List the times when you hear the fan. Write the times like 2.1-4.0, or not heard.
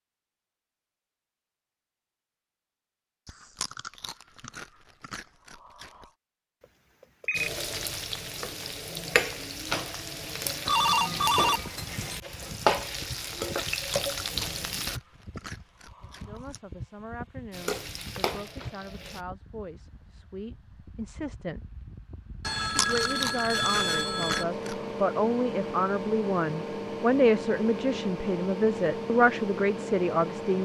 11.4-30.6.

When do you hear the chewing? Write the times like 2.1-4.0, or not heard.
3.2-6.1, 13.8-16.6, 22.4-24.9.